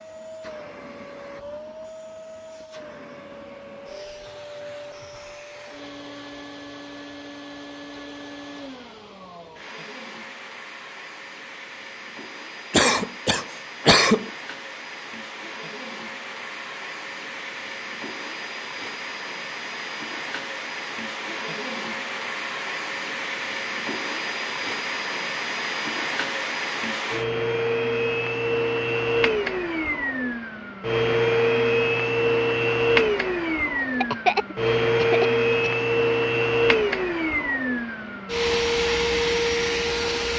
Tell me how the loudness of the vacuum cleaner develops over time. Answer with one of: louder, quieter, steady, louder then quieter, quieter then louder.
louder.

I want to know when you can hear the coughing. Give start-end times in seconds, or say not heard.
12.7-14.3, 34.0-35.7.